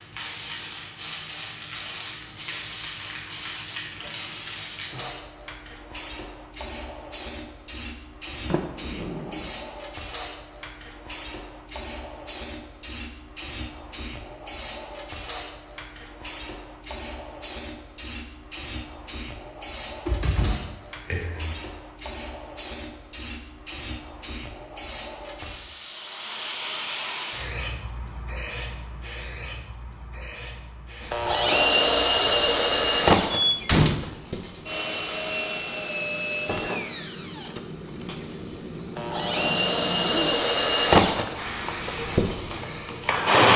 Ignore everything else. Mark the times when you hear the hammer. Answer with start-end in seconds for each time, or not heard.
not heard.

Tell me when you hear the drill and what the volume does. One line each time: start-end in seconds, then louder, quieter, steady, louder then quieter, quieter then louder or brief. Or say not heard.
31.0-43.5 quieter then louder.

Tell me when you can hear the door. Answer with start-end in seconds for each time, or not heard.
8.4-9.5, 19.9-21.6, 33.3-34.6.